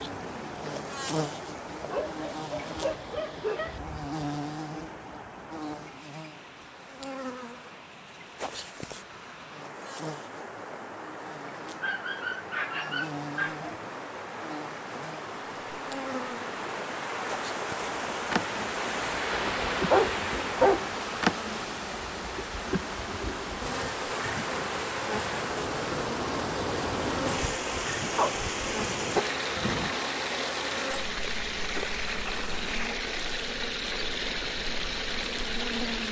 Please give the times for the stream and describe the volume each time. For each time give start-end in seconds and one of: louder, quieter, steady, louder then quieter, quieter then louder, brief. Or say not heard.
0.0-36.0 louder.